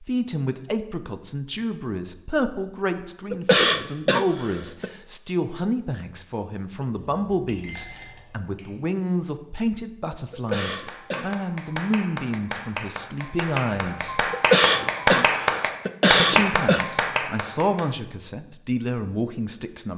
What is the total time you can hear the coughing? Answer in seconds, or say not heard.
5 s.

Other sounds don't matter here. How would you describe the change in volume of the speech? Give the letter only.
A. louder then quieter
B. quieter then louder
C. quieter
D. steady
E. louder
D.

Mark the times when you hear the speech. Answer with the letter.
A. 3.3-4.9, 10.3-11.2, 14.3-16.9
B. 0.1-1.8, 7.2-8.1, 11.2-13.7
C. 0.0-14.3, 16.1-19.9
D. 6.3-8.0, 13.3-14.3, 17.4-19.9
C.